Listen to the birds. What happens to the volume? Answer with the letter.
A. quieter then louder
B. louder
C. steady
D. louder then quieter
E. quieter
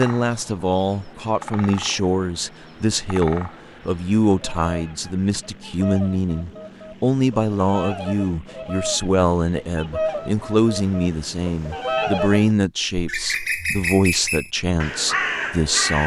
B.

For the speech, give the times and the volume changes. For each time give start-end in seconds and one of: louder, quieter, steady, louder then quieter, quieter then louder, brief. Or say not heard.
0.0-16.0 steady.